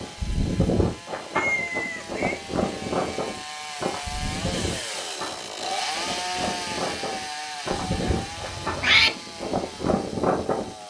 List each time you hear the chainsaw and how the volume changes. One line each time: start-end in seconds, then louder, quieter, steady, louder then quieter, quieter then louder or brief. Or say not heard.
0.0-10.8 louder then quieter.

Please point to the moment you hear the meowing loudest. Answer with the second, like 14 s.
9 s.